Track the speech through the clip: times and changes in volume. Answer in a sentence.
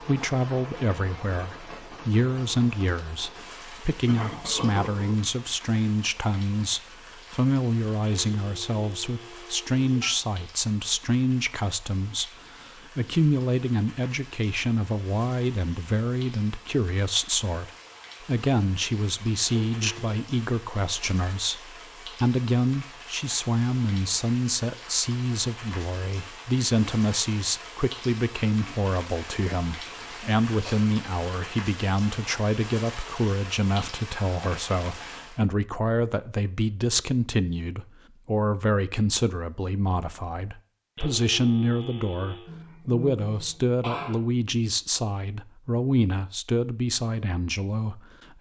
You can hear the speech from 0.0 to 48.3 s, at a steady volume.